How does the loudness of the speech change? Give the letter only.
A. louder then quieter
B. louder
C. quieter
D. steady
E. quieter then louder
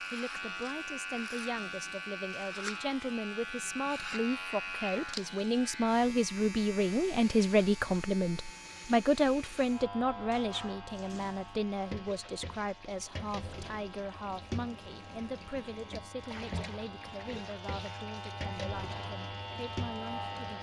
A.